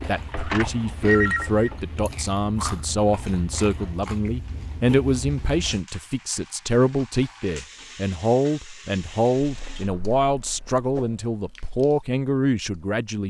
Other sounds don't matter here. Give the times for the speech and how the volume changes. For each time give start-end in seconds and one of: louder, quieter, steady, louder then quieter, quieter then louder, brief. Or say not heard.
0.1-13.2 steady.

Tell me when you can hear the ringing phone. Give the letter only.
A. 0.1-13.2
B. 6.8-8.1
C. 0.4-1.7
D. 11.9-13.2
C.